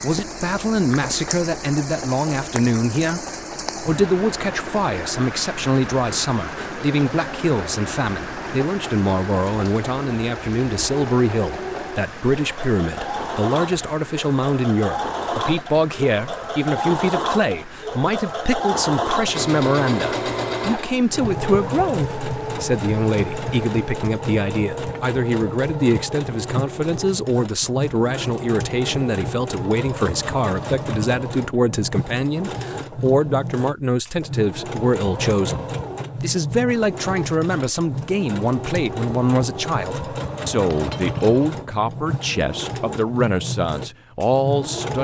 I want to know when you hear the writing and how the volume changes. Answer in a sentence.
The writing can't be heard in this clip.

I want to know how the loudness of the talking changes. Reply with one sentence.
The loudness of the talking stays about the same.